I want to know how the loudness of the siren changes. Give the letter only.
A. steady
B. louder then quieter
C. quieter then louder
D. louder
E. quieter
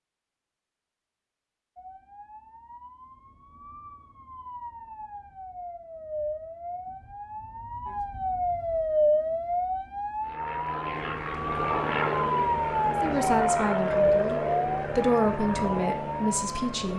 D.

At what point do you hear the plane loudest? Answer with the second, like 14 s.
12 s.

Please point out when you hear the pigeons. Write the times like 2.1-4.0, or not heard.
not heard.